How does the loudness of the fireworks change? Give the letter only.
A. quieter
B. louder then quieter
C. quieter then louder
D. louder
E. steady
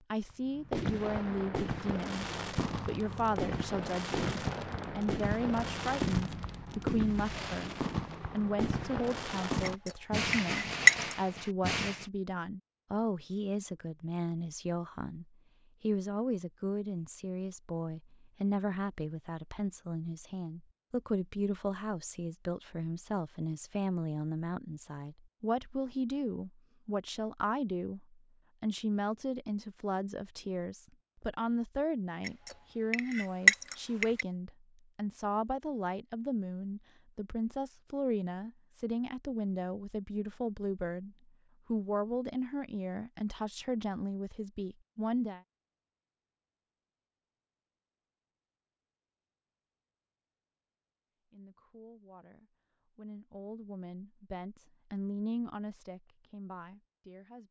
E.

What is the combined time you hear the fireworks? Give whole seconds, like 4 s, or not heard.
12 s.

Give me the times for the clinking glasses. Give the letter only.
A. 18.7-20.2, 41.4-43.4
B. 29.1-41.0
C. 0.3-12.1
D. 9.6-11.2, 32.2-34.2
D.